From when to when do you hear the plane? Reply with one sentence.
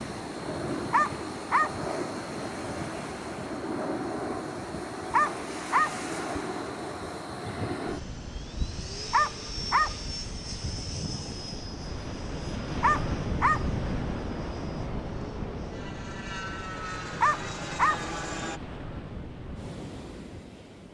The plane can be heard from 0.0 to 18.6 s.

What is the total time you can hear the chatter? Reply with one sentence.
The chatter can't be heard in this clip.